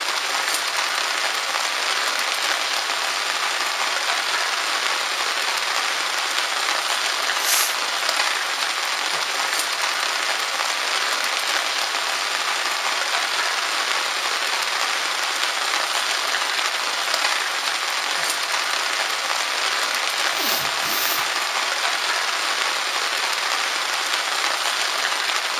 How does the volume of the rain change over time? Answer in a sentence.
The volume of the rain stays about the same.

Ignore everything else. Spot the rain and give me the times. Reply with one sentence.
The rain can be heard from 0.0 to 25.5 s.